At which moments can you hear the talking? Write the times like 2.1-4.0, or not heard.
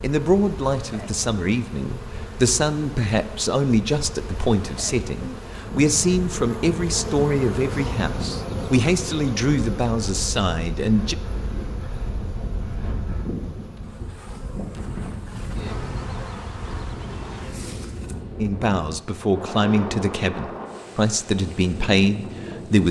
0.0-11.2, 18.4-22.8.